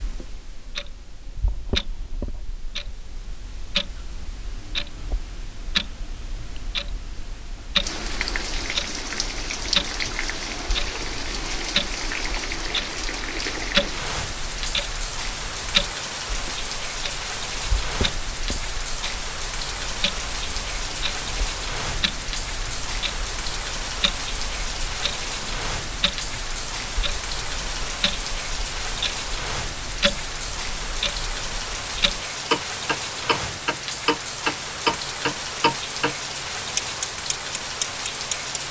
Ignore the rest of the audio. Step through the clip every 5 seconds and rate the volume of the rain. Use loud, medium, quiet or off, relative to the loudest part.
off, loud, loud, loud, loud, loud, loud, loud.